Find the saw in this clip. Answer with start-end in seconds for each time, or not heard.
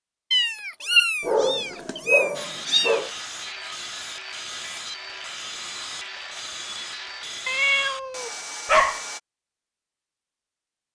2.3-9.2.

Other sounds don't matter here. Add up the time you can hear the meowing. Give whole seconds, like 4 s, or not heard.
4 s.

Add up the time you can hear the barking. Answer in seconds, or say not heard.
2 s.